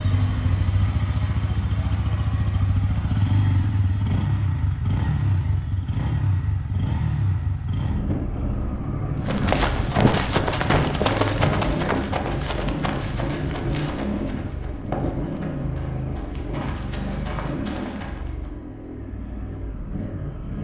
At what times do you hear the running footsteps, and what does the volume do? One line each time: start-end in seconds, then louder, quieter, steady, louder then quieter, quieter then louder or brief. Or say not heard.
9.2-18.5 quieter.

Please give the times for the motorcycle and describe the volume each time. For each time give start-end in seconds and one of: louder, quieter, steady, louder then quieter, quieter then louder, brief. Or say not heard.
0.0-20.5 quieter.